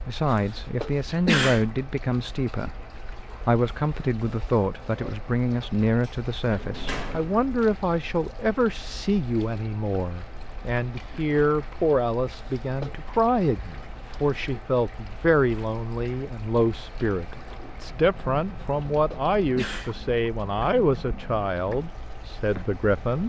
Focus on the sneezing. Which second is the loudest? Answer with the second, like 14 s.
1 s.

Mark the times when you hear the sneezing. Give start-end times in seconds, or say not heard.
0.3-1.6, 12.3-13.0, 18.6-19.9.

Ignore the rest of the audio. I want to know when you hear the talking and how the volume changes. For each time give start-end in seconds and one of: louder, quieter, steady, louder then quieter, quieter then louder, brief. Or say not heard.
0.1-23.2 steady.